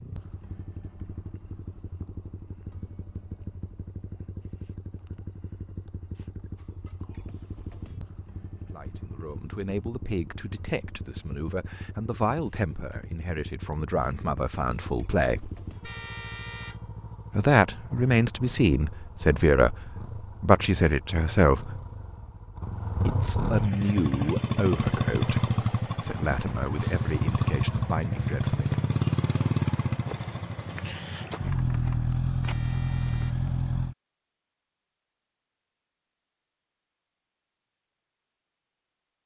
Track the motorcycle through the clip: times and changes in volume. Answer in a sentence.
The motorcycle can be heard from 0.0 to 34.0 s, getting louder.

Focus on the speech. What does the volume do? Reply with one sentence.
The volume of the speech goes up, then down.